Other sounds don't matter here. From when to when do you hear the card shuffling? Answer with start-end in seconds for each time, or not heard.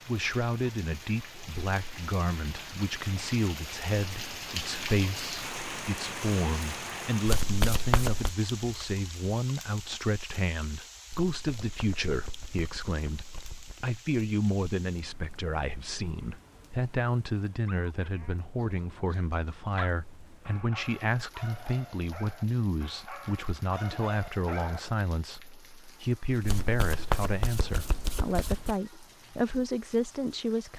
7.2-8.3, 11.3-13.8, 26.4-28.8.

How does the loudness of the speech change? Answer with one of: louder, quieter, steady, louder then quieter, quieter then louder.
steady.